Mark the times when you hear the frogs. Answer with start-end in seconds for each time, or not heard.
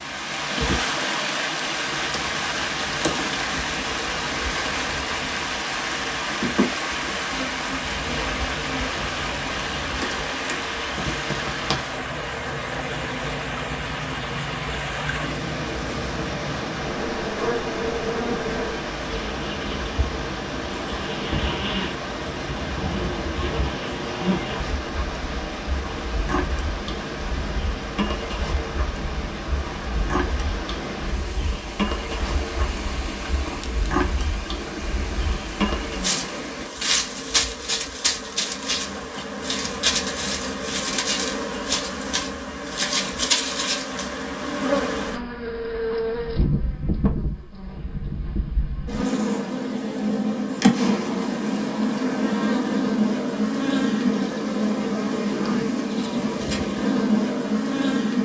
not heard.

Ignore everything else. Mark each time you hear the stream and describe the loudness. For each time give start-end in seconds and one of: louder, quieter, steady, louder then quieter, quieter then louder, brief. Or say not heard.
0.0-36.8 quieter.